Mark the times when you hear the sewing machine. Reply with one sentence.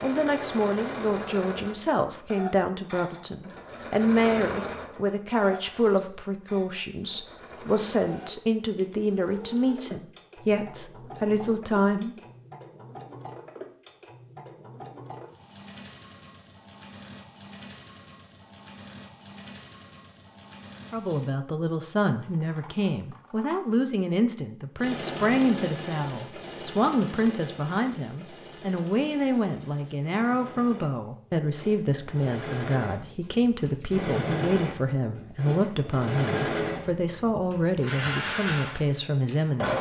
The sewing machine can be heard from 0.0 to 21.3 s and from 24.8 to 39.7 s.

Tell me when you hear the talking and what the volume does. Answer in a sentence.
The talking can be heard from 0.0 to 12.2 s, at a steady volume; and from 20.9 to 39.7 s, at a steady volume.